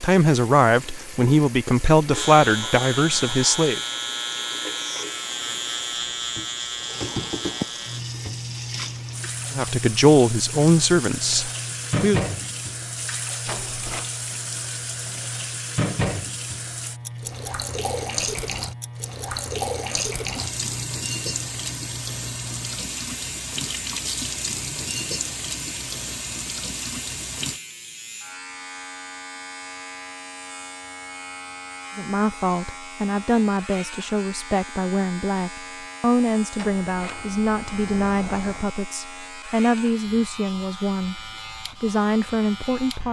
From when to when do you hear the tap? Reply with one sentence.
You can hear the tap from 0.0 to 27.6 s.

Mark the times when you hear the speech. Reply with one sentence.
The speech can be heard from 0.0 to 3.8 s, from 9.5 to 12.2 s and from 31.9 to 43.0 s.